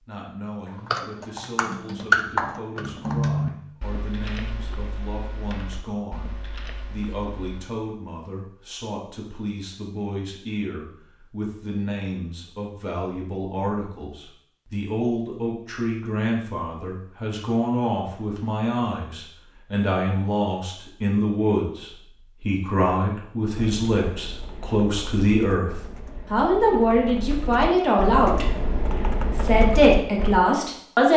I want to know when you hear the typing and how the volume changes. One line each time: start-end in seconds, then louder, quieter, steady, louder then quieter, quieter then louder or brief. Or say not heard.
0.7-7.7 quieter
23.6-30.4 louder.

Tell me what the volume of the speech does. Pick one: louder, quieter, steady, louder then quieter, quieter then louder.
louder.